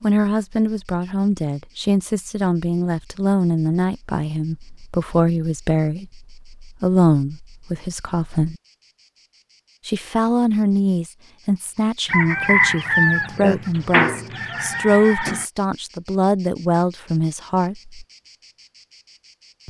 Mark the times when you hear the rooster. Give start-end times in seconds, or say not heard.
12.1-15.4.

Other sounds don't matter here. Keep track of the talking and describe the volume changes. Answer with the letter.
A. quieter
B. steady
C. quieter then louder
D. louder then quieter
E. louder
B.